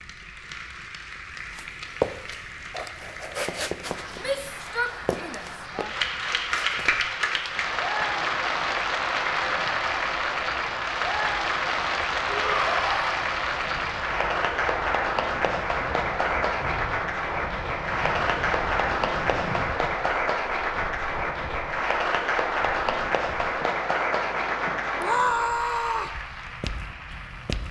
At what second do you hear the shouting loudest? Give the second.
25 s.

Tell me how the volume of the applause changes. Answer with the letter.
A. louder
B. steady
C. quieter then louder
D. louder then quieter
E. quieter
A.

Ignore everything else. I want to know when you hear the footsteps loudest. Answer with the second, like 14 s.
2 s.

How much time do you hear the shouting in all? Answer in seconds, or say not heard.
4 s.